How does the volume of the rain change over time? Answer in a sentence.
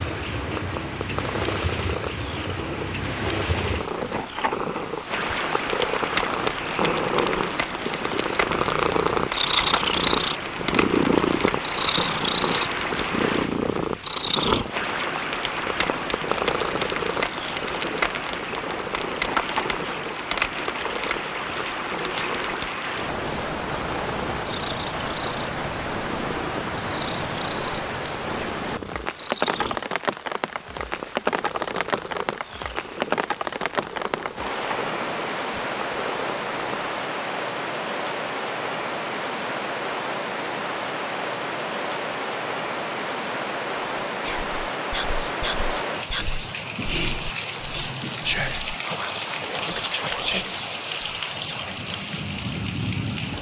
The loudness of the rain stays about the same.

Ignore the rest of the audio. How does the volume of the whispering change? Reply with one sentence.
The volume of the whispering goes up.